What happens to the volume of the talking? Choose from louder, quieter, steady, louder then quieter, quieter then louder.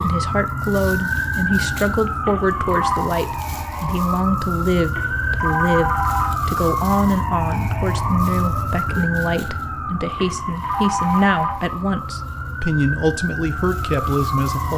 steady.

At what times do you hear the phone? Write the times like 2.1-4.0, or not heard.
2.2-3.1, 5.0-6.3, 10.2-11.6.